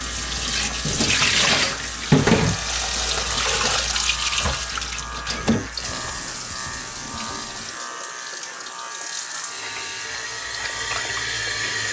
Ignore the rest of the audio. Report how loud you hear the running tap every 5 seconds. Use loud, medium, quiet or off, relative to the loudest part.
loud, medium, medium.